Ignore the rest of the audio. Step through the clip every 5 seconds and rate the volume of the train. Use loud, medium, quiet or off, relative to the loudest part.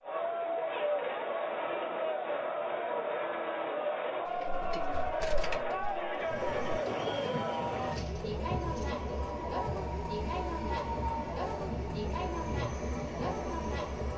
off, loud, loud.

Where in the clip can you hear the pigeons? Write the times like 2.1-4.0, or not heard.
4.2-9.3.